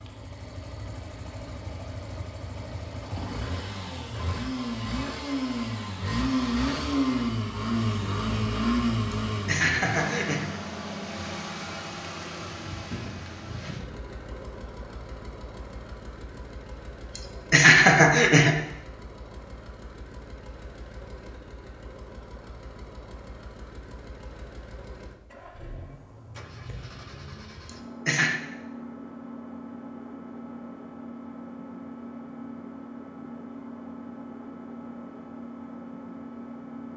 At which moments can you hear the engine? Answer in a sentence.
You can hear the engine from 0.0 to 36.9 s.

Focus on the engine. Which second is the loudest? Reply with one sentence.
The loudest moment of the engine is at 7 seconds.